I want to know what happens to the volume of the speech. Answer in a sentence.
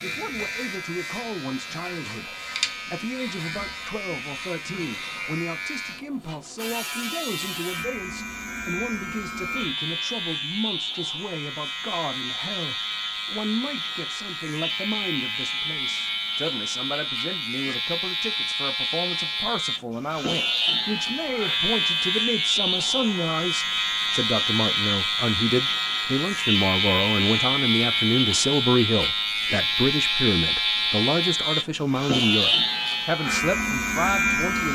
The volume of the speech goes up.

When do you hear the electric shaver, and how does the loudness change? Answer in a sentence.
The electric shaver can be heard from 0.0 to 34.6 s, getting louder.